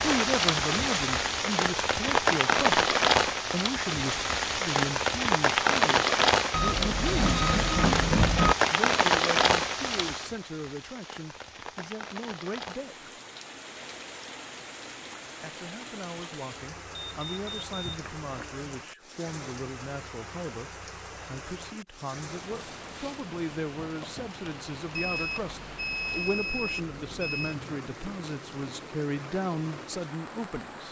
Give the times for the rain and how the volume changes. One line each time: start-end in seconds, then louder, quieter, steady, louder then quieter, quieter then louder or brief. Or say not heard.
0.0-30.8 quieter.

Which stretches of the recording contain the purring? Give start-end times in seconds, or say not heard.
not heard.